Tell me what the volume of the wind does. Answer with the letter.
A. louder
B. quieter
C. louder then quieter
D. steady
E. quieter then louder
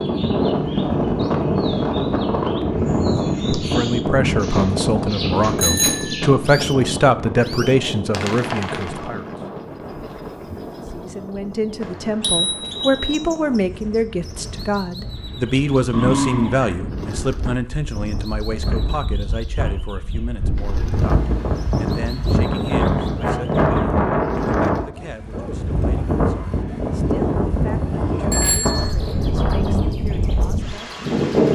E.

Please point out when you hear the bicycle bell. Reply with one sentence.
The bicycle bell can be heard from 5.5 to 6.2 s, from 11.8 to 13.2 s and from 28.3 to 28.9 s.